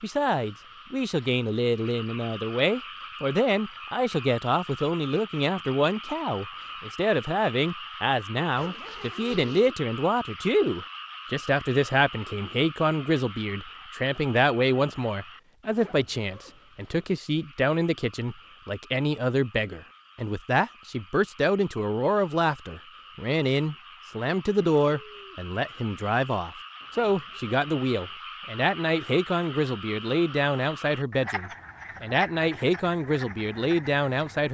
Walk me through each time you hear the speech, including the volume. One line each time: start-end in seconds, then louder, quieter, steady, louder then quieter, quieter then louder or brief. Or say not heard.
0.0-34.4 steady.